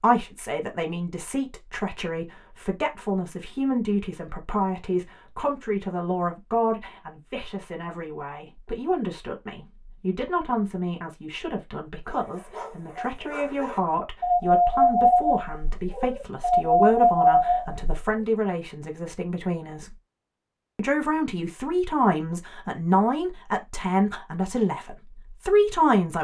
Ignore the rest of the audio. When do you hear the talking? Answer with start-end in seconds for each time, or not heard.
0.0-19.9, 20.8-26.1.